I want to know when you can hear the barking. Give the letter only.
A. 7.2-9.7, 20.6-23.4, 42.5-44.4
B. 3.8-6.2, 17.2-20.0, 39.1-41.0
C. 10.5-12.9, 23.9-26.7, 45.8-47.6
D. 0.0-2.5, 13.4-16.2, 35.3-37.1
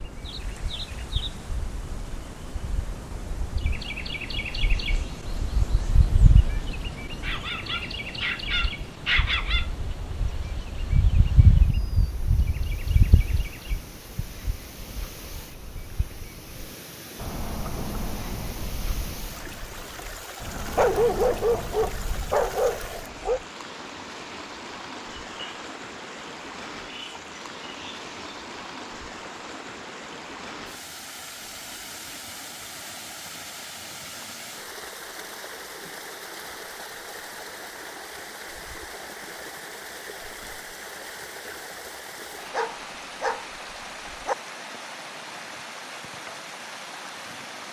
A.